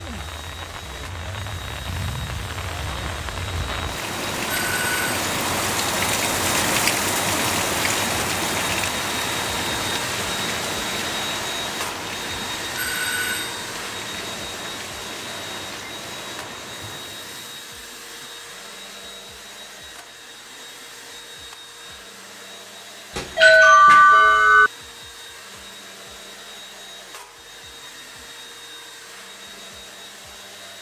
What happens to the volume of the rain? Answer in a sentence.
The loudness of the rain goes up, then down.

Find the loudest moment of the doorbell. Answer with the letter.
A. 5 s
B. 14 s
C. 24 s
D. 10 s
C.